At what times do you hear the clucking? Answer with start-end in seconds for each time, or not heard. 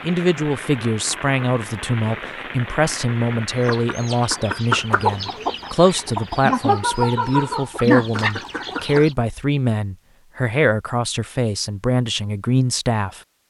3.5-9.2.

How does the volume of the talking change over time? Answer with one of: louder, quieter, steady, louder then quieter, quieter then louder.
steady.